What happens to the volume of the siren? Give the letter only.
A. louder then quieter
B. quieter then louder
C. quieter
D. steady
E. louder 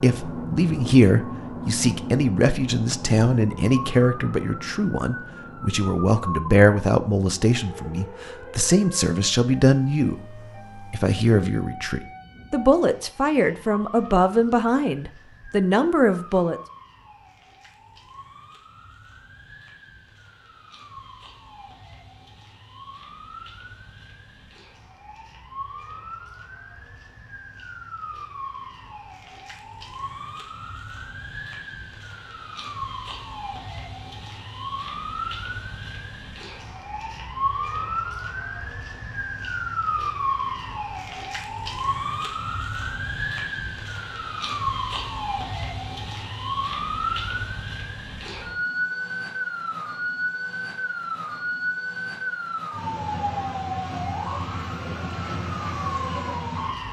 B.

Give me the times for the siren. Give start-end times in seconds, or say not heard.
0.0-56.8.